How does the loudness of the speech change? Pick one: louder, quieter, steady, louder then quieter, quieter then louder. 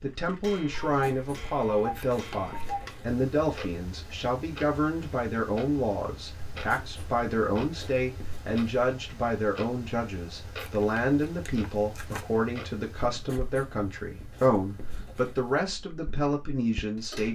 steady.